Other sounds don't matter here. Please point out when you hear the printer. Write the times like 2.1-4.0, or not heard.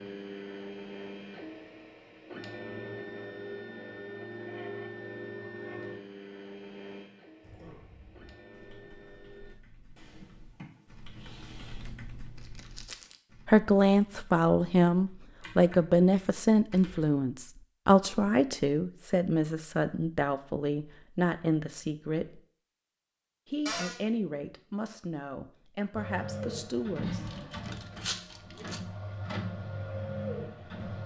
0.0-9.6, 25.9-31.0.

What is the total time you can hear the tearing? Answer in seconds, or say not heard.
2 s.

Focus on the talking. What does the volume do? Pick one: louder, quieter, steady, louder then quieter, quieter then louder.
quieter.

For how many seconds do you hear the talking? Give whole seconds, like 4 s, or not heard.
13 s.